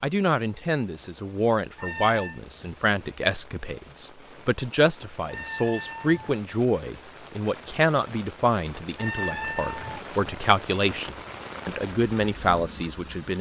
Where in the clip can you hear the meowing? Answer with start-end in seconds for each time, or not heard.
1.8-2.4, 5.2-6.8, 8.9-10.1.